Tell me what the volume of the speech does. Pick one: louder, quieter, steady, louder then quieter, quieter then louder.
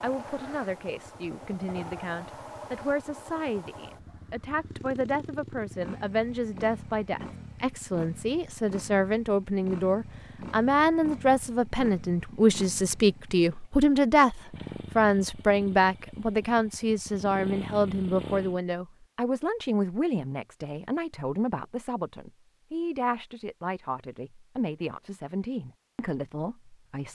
louder then quieter.